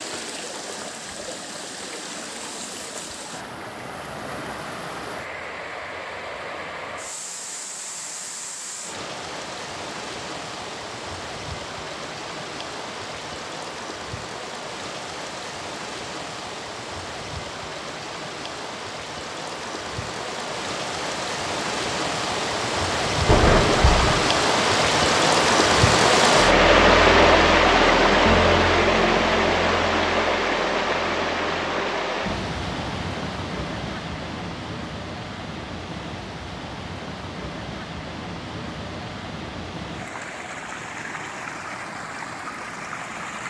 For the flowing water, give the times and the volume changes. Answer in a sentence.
The flowing water can be heard from 0.0 to 43.4 s, getting louder then quieter.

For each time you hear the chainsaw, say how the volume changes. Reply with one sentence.
The chainsaw can't be heard in this clip.